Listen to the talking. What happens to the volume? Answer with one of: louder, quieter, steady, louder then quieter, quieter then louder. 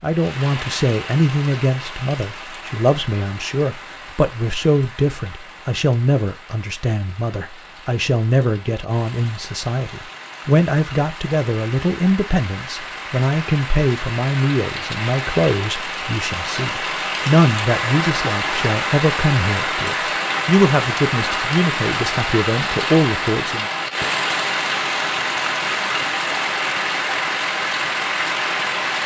steady.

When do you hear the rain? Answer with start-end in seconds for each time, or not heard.
0.0-29.0.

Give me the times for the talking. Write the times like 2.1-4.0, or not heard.
0.0-23.6.